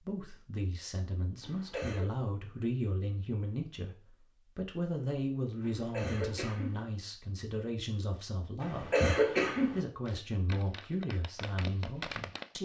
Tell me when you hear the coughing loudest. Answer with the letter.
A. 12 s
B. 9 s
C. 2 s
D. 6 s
B.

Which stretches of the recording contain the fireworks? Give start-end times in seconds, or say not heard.
10.1-12.5.